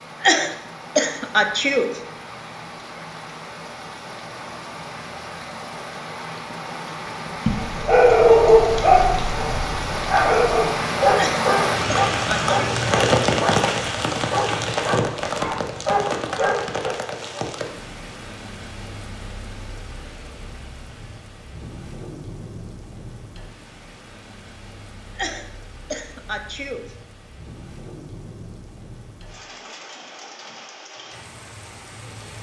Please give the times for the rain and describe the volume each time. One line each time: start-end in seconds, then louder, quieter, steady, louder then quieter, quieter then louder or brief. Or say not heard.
0.0-32.3 louder then quieter.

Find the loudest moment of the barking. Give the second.
8 s.